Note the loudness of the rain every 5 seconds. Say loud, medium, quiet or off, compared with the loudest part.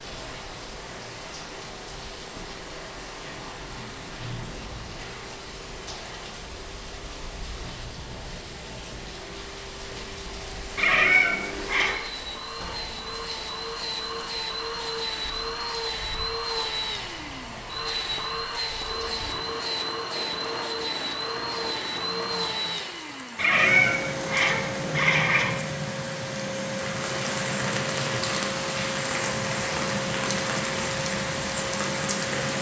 medium, medium, medium, medium, medium, loud, loud.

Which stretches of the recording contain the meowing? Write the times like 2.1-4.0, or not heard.
10.8-11.9, 23.4-25.6.